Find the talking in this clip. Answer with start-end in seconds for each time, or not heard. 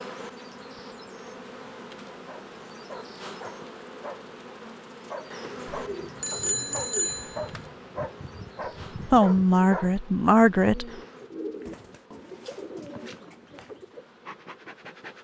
9.1-10.8.